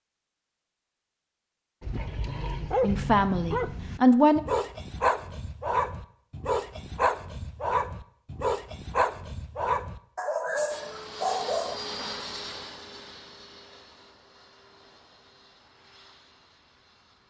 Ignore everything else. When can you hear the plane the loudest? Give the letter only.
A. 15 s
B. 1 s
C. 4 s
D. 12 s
D.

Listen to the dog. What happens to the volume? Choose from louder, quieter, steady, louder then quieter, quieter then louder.
steady.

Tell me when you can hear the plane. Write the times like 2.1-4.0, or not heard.
10.7-17.2.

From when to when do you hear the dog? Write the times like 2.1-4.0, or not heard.
1.8-11.8.